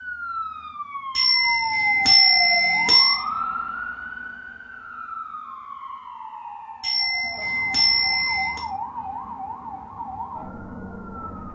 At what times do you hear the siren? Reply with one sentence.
You can hear the siren from 0.0 to 11.4 s.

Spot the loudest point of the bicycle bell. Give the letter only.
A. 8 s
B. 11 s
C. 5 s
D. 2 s
D.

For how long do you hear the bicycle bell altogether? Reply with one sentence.
You can hear the bicycle bell for 4 seconds altogether.